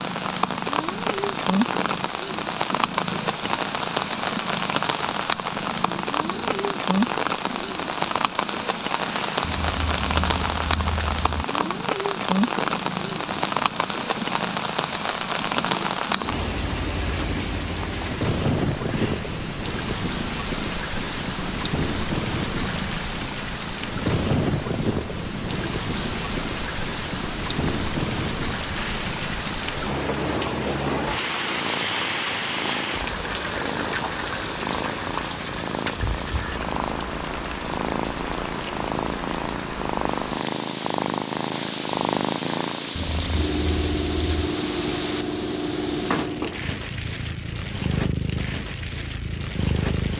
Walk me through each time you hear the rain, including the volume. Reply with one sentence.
You can hear the rain from 0.0 to 50.1 s, getting quieter.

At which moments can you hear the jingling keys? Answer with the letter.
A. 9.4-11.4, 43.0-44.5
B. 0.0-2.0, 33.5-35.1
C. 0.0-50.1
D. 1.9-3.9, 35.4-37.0
A.